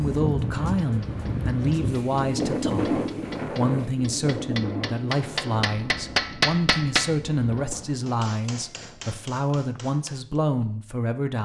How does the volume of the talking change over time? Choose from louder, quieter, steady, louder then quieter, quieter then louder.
steady.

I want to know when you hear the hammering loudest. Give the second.
6 s.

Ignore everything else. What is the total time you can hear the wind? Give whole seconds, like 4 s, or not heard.
8 s.